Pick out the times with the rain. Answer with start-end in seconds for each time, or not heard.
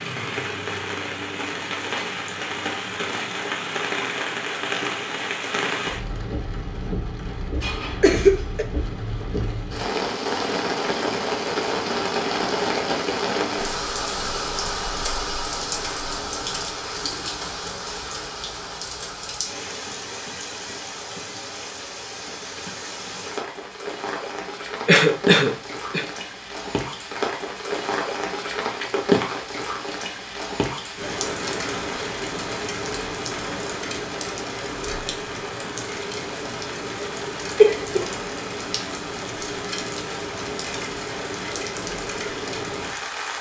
0.0-43.3.